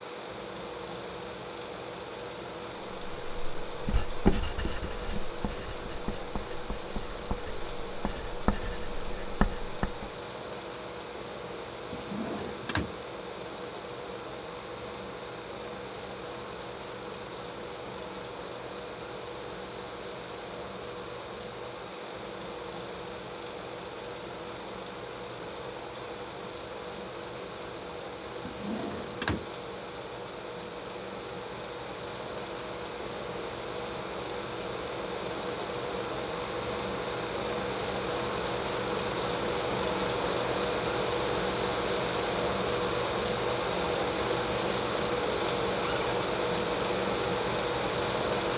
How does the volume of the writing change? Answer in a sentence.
The loudness of the writing goes down, then up.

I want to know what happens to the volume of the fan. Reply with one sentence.
The volume of the fan goes up.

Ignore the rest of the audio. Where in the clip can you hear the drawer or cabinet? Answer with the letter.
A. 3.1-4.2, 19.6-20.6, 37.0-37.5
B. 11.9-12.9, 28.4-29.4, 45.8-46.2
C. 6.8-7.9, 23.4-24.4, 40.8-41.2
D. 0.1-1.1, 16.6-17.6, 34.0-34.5
B.